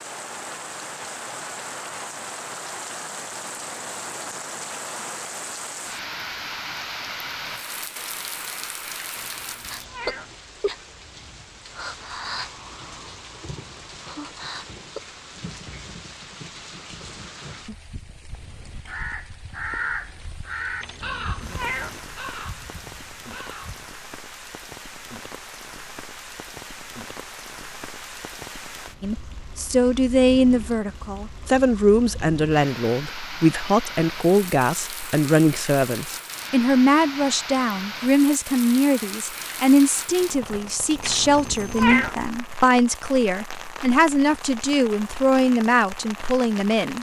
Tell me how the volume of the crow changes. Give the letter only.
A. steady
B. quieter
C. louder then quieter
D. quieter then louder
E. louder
C.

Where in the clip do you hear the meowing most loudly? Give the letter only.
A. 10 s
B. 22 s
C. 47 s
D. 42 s
D.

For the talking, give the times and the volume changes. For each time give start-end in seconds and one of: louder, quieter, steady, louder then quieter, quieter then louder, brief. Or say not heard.
29.0-46.9 steady.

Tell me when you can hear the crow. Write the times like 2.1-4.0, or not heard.
18.2-24.0.